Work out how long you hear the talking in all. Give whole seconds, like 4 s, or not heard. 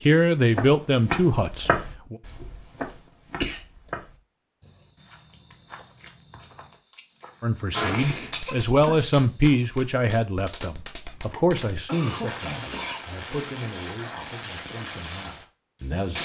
11 s.